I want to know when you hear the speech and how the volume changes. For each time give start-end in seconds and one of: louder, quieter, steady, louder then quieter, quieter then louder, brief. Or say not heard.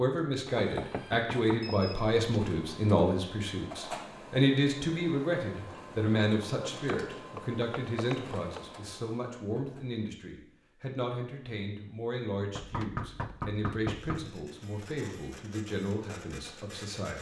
0.0-17.1 quieter.